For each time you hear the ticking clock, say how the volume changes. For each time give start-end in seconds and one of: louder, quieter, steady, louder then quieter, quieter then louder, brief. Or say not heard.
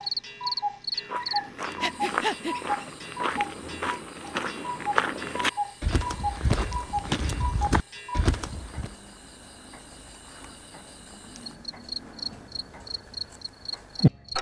0.0-14.3 quieter.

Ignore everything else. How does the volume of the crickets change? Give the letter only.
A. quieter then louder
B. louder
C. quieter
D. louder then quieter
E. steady
A.